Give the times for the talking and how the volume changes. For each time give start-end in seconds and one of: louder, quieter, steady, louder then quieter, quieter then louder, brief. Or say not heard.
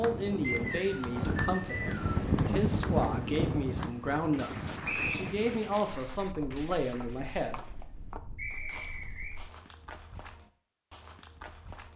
0.0-7.6 steady.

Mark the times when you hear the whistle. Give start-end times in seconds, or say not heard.
0.4-2.2, 4.8-5.2, 8.3-9.4.